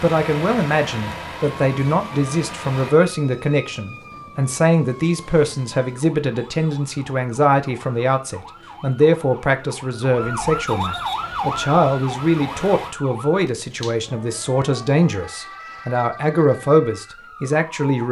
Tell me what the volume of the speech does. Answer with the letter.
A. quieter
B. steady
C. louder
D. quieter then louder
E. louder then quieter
B.